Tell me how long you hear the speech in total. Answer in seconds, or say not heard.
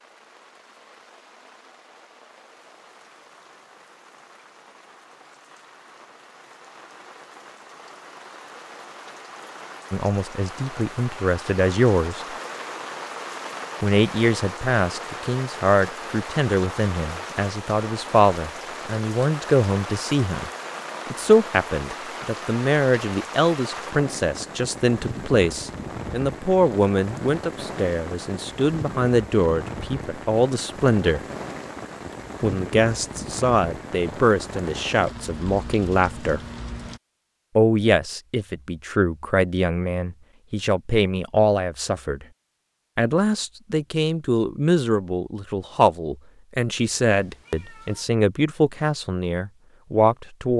36 s.